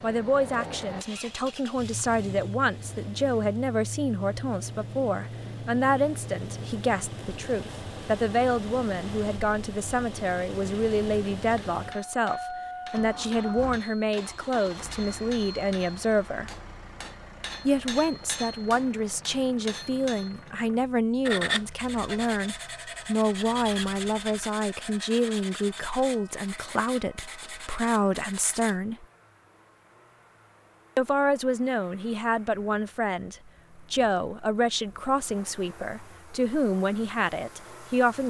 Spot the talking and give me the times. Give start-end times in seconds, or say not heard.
0.0-16.5, 17.6-29.1, 30.9-38.2.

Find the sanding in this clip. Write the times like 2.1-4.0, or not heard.
21.2-28.8.